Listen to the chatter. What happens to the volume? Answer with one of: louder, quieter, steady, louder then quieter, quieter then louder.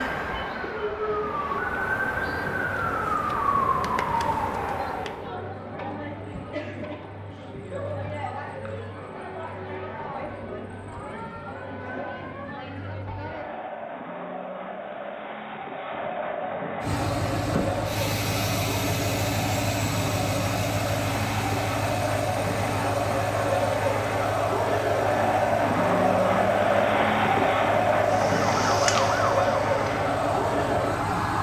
louder.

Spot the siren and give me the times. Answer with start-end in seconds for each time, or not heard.
0.0-5.3, 28.1-31.3.